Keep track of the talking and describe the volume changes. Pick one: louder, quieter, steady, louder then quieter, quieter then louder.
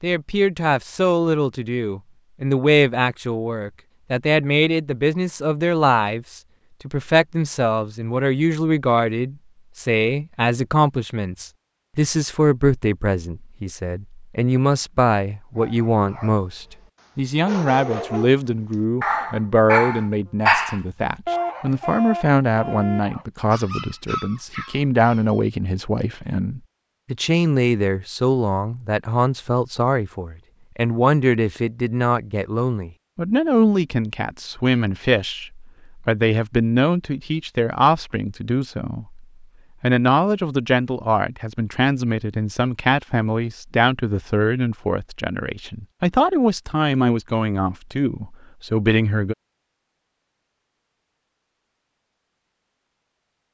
steady.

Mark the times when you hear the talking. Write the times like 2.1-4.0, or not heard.
0.0-49.4.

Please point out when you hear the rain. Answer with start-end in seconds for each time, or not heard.
not heard.